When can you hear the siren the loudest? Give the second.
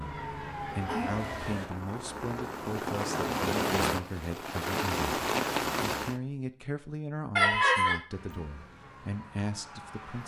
1 s.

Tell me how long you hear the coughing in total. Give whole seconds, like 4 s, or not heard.
2 s.